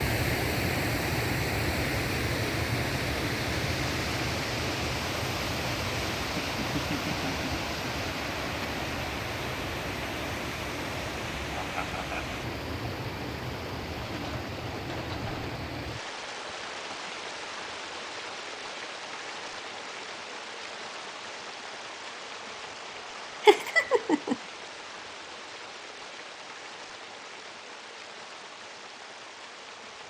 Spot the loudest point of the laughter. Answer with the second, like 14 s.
24 s.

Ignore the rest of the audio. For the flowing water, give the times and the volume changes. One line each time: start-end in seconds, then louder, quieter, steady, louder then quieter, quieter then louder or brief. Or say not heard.
0.0-30.0 quieter.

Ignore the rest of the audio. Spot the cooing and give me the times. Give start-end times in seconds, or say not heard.
14.0-15.6.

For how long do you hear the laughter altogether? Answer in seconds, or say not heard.
3 s.